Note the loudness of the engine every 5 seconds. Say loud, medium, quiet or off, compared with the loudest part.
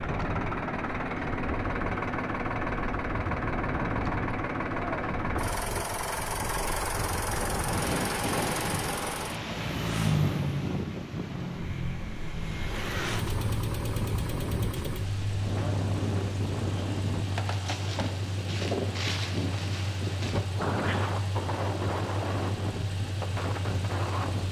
loud, loud, loud, medium, medium.